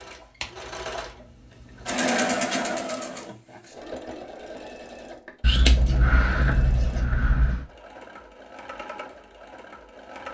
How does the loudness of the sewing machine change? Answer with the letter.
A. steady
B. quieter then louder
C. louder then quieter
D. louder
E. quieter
E.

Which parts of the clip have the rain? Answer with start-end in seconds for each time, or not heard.
not heard.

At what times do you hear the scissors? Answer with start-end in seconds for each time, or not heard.
5.4-7.7.